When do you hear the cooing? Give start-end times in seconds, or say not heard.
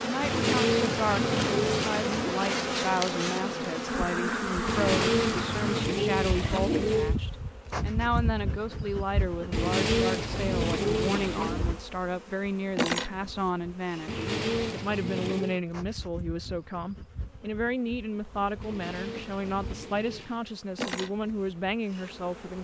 0.2-2.4, 4.7-7.2, 9.5-11.7, 14.1-15.6, 18.6-20.4.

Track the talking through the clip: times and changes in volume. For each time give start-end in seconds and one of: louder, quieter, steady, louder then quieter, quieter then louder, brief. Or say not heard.
0.0-22.5 steady.